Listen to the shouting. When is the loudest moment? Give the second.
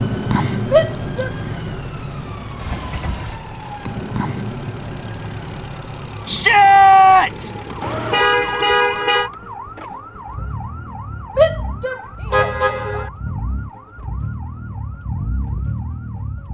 7 s.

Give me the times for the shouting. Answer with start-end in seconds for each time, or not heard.
0.7-1.3, 6.2-7.5, 11.3-13.1.